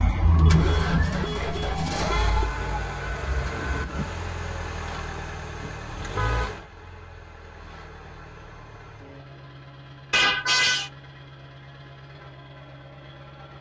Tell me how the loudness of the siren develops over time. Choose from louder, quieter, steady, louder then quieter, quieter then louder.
quieter.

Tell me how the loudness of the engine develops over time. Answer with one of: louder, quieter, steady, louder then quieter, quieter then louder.
quieter.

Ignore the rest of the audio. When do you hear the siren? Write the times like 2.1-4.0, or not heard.
0.0-4.0.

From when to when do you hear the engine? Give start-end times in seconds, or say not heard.
0.2-13.5.